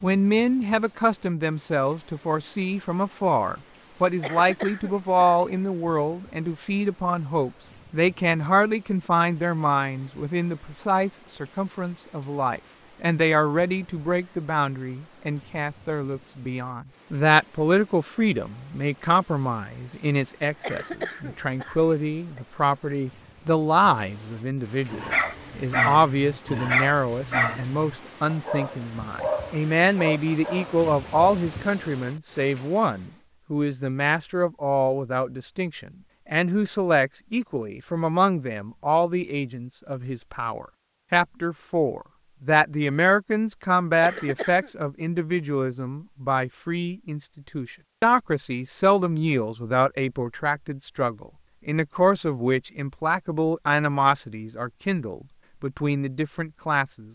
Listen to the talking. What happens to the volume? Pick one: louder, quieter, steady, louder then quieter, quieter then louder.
steady.